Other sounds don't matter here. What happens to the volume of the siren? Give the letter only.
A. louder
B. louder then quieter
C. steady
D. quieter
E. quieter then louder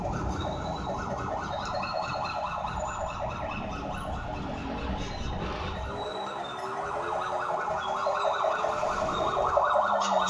E.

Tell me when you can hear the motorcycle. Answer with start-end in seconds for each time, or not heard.
0.0-10.2.